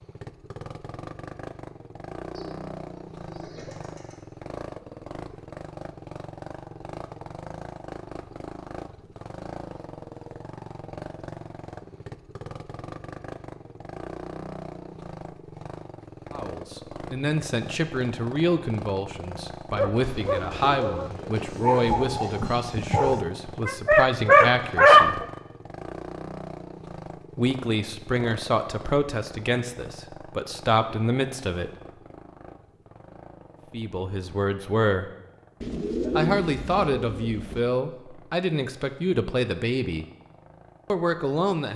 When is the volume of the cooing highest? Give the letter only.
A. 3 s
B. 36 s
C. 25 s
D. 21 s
B.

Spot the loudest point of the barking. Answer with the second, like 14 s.
25 s.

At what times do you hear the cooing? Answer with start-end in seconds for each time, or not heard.
2.3-4.2, 20.0-22.4, 35.6-37.6.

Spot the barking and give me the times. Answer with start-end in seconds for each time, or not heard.
19.7-25.2.